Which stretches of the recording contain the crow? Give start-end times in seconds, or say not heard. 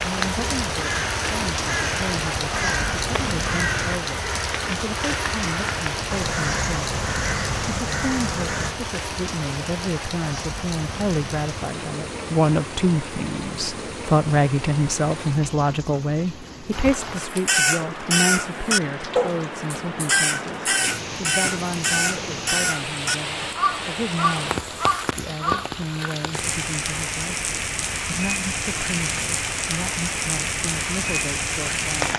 0.0-8.8, 17.2-25.8.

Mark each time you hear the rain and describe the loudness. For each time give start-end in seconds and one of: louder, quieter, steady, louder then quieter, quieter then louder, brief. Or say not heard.
0.0-32.1 quieter then louder.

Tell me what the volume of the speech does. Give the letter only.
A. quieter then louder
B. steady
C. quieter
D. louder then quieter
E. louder
D.